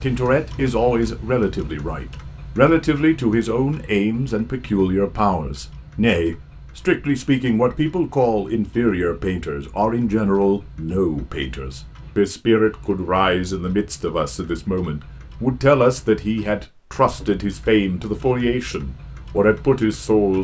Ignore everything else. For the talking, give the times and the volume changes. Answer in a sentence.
The talking can be heard from 0.0 to 20.3 s, at a steady volume.